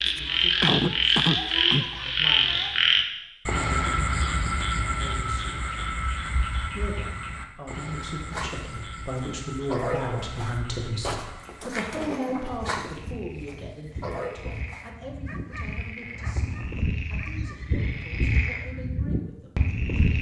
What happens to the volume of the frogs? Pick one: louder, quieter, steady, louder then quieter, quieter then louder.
quieter then louder.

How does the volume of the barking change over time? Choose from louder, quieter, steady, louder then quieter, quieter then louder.
quieter.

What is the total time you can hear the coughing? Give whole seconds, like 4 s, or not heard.
2 s.